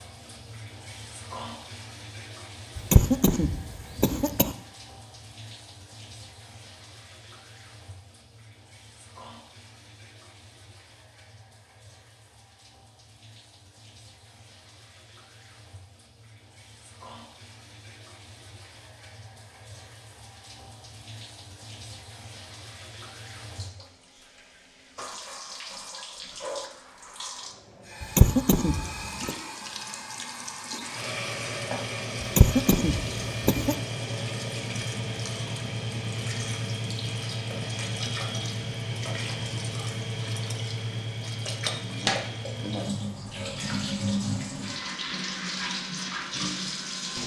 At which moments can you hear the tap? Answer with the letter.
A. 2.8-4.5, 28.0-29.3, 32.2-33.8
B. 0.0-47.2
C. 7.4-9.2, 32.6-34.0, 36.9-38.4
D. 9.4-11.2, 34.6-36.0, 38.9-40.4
B.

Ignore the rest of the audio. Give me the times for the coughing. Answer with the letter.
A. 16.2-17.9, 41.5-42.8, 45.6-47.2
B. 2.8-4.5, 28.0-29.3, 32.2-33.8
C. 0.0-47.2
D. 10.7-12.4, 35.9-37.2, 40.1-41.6
B.